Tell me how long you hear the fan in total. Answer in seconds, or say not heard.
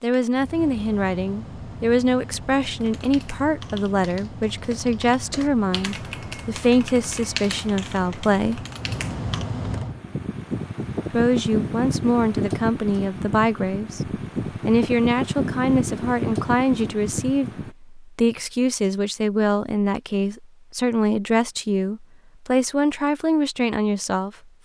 18 s.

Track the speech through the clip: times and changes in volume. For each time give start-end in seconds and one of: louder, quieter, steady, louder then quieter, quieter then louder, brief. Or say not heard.
0.0-8.7 steady
11.1-24.3 steady.